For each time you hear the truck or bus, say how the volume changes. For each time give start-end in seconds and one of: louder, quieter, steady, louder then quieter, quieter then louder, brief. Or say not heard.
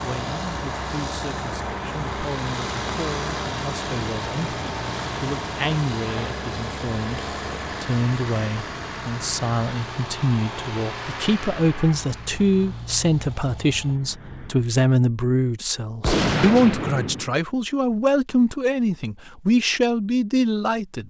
0.0-14.7 quieter.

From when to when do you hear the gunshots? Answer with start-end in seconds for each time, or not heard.
16.0-17.3.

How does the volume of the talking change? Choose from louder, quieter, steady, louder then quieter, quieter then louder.
louder.